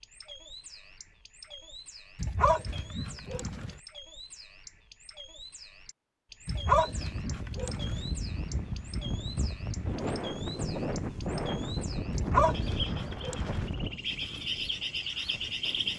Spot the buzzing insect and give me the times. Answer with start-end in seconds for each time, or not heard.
not heard.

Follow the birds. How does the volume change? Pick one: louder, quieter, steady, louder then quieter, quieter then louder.
louder.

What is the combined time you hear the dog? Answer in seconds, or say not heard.
5 s.